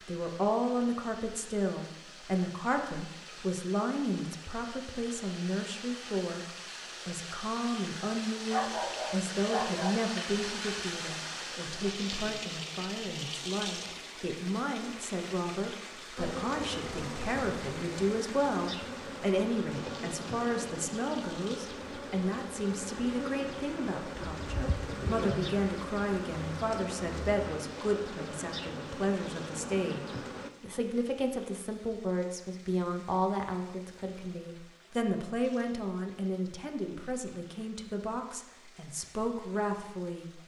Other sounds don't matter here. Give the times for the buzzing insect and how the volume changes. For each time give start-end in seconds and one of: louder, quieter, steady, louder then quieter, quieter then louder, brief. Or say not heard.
16.1-30.5 steady.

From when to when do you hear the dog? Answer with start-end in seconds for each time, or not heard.
8.5-10.1.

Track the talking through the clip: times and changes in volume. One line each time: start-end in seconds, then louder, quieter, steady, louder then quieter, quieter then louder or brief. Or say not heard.
0.0-40.4 steady.